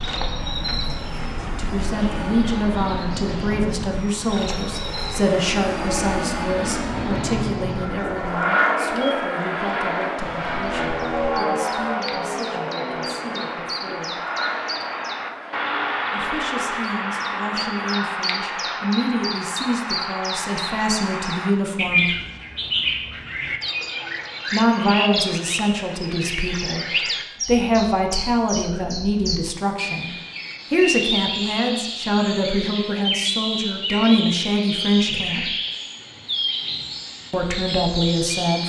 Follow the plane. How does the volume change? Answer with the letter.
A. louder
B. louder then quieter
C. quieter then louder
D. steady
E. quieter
B.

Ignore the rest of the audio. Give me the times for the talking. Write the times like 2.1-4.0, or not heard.
1.6-14.2, 16.1-22.1, 24.5-30.1, 30.7-35.5, 37.3-38.6.